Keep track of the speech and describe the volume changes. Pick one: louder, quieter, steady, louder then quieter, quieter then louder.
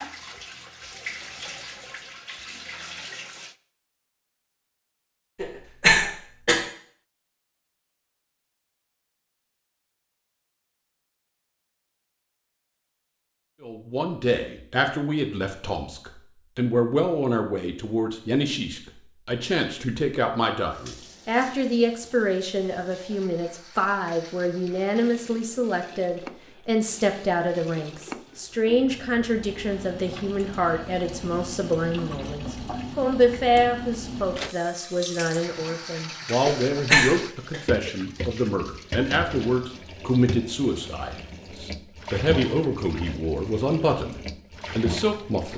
steady.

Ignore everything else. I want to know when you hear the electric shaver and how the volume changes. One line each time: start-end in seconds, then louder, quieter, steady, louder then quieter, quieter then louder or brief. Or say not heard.
not heard.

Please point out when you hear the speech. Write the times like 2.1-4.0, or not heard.
13.6-45.5.